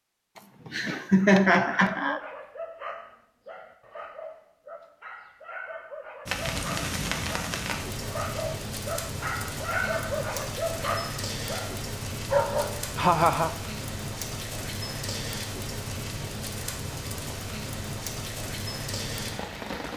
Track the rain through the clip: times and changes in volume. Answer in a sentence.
The rain can be heard from 6.2 to 19.9 s, at a steady volume.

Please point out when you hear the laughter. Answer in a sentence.
The laughter can be heard from 0.7 to 2.2 s and from 12.9 to 13.5 s.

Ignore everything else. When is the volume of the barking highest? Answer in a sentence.
The loudest moment of the barking is at 12 seconds.